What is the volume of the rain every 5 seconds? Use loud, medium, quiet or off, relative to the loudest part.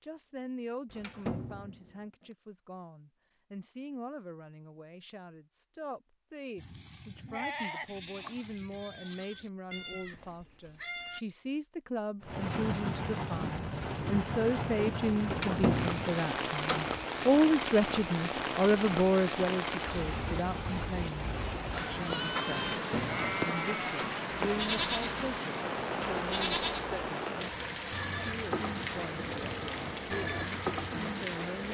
off, off, loud, loud, loud, loud, loud.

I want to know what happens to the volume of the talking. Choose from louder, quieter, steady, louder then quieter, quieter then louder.
louder then quieter.